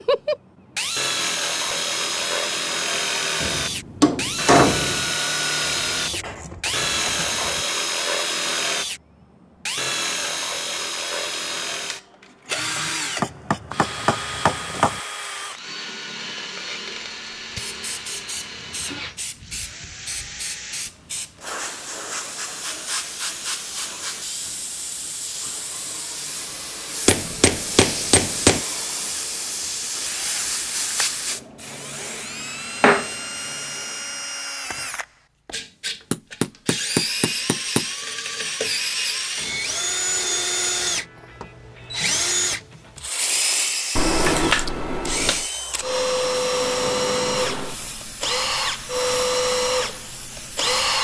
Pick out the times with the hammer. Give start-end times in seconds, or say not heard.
3.4-5.2, 13.2-15.0, 27.1-28.6, 36.1-37.9, 44.0-45.5.